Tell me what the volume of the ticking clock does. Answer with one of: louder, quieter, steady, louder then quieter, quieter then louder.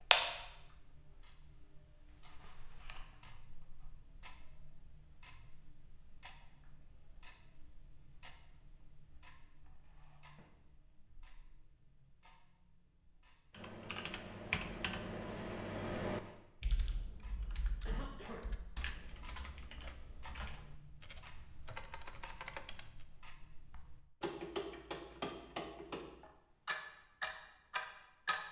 quieter then louder.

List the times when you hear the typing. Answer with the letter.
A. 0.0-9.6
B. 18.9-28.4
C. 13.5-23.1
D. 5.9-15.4
C.